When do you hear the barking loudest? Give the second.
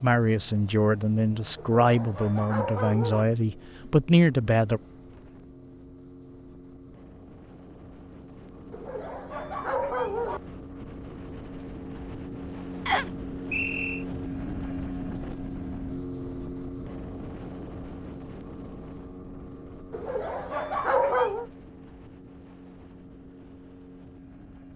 21 s.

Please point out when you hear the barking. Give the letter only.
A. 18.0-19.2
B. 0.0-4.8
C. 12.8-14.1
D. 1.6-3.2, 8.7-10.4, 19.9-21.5
D.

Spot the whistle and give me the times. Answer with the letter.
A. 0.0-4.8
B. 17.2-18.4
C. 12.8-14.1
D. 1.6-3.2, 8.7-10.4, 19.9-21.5
C.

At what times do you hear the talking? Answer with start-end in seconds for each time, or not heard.
0.0-4.8.